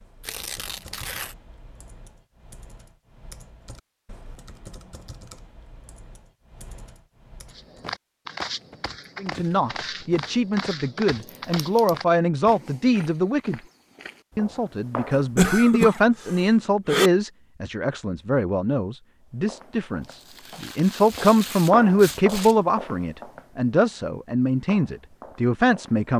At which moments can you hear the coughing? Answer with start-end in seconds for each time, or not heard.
15.2-17.1.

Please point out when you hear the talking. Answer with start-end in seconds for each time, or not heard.
9.2-13.6, 14.3-26.1.